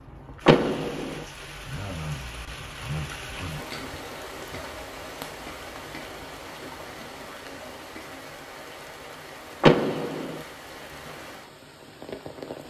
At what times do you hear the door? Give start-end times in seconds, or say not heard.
0.5-1.2, 9.6-10.4.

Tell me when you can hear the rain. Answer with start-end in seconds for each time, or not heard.
0.0-12.6.